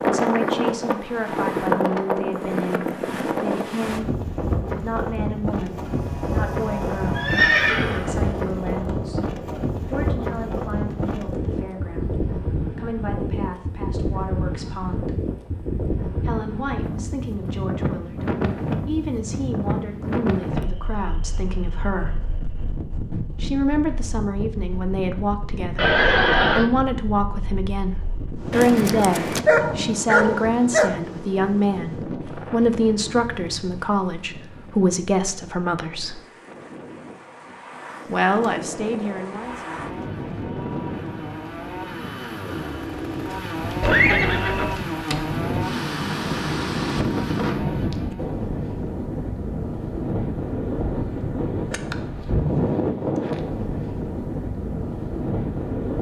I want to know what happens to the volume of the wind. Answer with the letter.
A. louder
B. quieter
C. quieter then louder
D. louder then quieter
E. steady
C.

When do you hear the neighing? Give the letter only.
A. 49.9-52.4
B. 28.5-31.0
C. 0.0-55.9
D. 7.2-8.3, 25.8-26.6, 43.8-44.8
D.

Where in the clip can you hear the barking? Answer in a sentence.
The barking can be heard from 28.5 to 31.0 s.